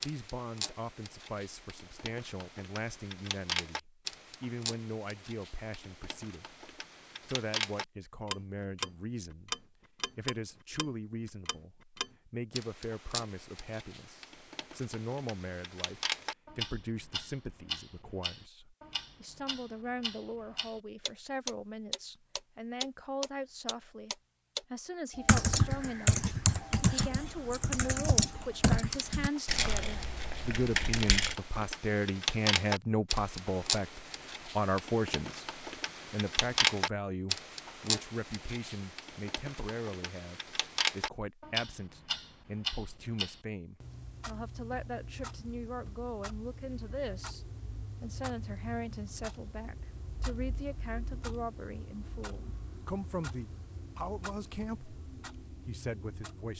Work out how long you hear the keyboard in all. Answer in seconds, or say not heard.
6 s.